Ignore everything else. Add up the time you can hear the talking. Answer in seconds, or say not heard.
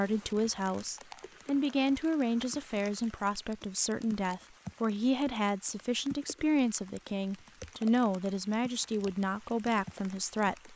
11 s.